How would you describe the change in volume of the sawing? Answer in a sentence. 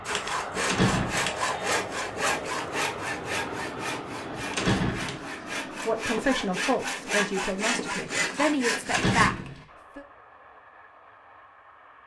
The loudness of the sawing goes down, then up.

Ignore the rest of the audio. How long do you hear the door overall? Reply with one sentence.
The door can be heard for 2 seconds in total.